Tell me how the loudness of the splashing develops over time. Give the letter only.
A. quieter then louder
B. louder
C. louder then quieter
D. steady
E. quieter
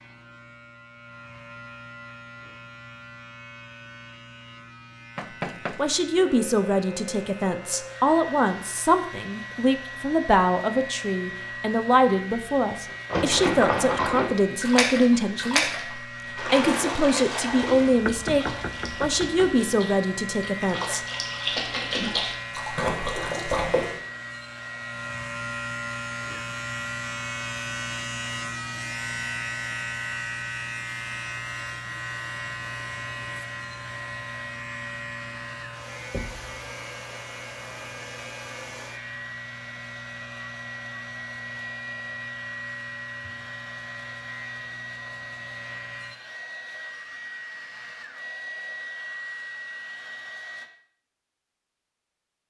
A.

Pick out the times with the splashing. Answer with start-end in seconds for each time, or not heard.
13.1-23.9.